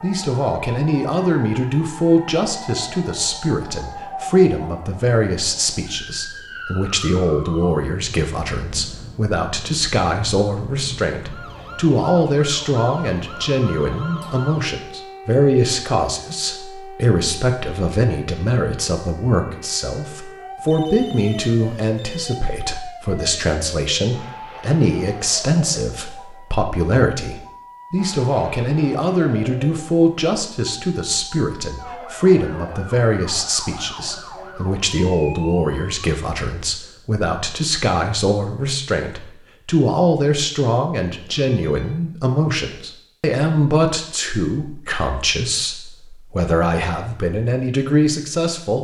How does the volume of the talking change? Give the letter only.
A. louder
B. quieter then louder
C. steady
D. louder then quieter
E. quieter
C.